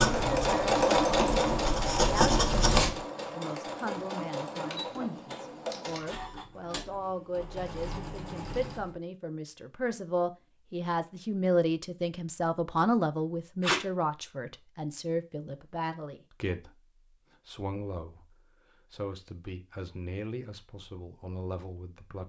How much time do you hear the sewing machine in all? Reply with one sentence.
You can hear the sewing machine for 9 seconds altogether.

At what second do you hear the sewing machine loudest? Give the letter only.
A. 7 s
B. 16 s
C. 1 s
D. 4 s
C.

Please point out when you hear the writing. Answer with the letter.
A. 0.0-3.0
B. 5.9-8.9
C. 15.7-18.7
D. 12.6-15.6
A.